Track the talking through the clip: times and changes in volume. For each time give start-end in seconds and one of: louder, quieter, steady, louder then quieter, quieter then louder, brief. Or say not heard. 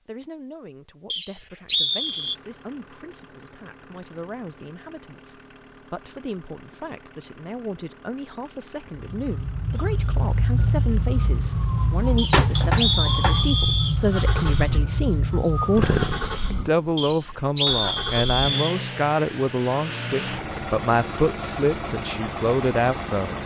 0.1-23.4 louder.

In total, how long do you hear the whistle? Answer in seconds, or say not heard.
5 s.